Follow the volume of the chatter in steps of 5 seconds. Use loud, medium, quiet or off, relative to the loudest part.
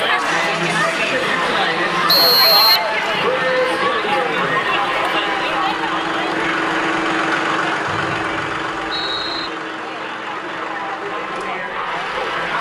loud, medium, medium.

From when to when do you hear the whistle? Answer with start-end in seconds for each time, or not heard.
2.0-2.9, 7.8-9.5.